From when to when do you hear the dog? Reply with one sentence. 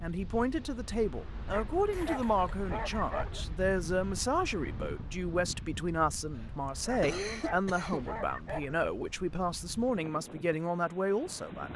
The dog can be heard from 1.4 to 3.5 s and from 6.8 to 8.8 s.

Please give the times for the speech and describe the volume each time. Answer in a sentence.
The speech can be heard from 0.0 to 11.7 s, at a steady volume.